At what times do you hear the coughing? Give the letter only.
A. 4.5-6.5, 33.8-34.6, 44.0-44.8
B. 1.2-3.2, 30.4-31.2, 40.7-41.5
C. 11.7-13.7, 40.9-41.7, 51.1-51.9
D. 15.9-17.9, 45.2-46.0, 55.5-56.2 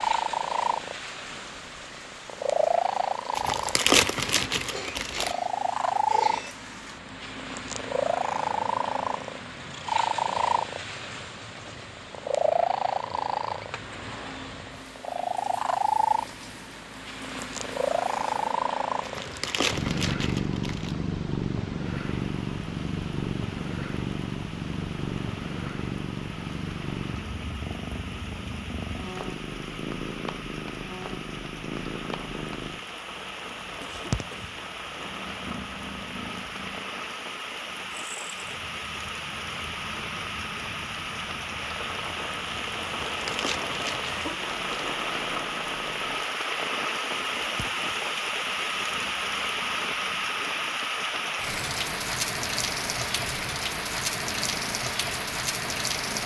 A.